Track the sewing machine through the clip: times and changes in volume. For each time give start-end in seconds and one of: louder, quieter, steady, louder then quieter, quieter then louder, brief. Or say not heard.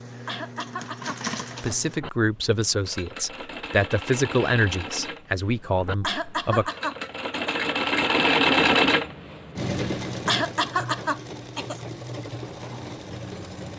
0.0-13.7 louder then quieter.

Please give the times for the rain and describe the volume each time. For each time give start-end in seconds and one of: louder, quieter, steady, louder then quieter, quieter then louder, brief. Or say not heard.
not heard.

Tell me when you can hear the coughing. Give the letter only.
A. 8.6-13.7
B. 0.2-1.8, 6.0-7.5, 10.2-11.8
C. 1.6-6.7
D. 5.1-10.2
B.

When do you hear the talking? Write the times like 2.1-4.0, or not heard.
1.6-6.7.